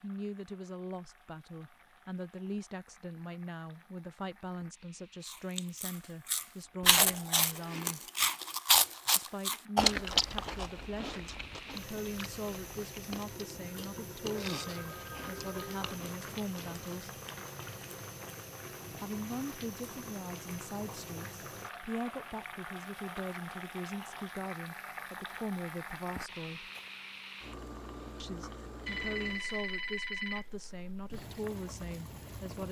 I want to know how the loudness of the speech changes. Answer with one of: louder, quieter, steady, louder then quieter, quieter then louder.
steady.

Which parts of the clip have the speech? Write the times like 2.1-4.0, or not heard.
0.0-8.1, 9.2-17.1, 18.9-26.7, 28.2-32.6.